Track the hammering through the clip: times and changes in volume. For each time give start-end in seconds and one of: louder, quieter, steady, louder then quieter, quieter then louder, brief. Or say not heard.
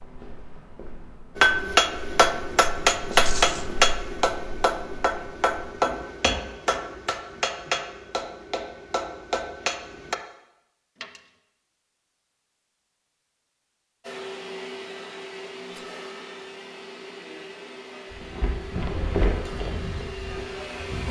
1.4-10.2 quieter.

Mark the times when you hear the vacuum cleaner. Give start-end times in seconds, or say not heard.
14.0-21.0.